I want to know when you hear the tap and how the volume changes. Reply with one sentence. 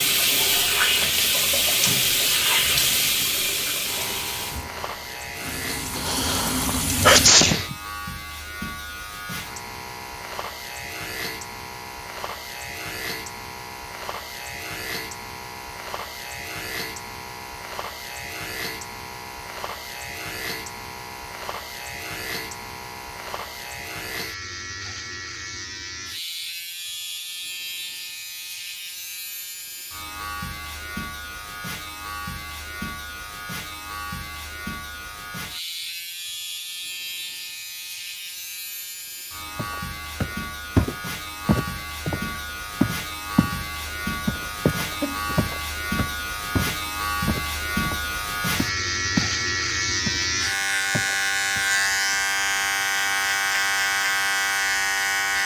You can hear the tap from 0.0 to 7.3 s, getting quieter then louder.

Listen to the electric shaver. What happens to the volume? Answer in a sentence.
The loudness of the electric shaver goes up.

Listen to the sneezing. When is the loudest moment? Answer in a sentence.
The volume of the sneezing peaks at 7 seconds.